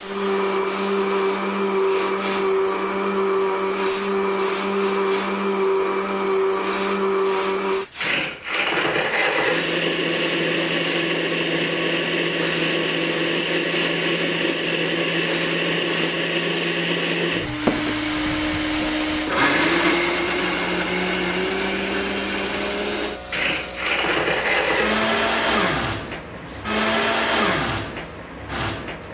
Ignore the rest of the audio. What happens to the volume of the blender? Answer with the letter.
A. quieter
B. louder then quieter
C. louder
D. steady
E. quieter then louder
D.